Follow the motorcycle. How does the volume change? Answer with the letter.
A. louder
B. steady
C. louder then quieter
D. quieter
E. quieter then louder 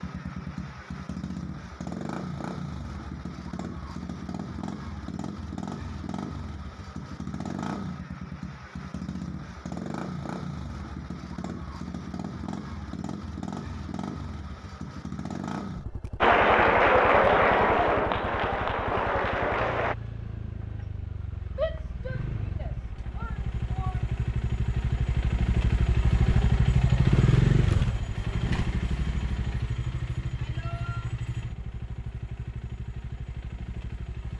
A.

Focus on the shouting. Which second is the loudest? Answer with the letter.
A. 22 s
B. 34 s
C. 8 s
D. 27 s
A.